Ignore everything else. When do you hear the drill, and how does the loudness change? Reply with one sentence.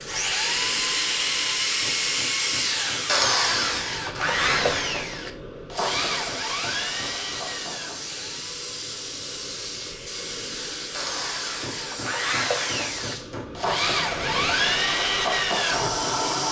The drill can be heard from 0.0 to 16.4 s, getting quieter then louder.